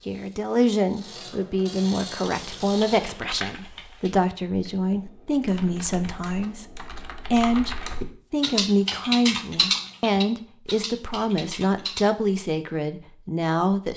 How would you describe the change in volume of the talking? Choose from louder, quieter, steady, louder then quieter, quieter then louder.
steady.